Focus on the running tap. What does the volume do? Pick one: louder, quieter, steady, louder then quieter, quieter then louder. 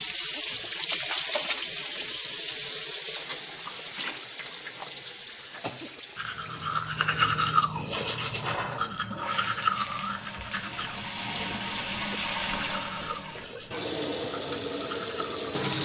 quieter then louder.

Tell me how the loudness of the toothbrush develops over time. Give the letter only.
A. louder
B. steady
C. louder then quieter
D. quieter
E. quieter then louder
D.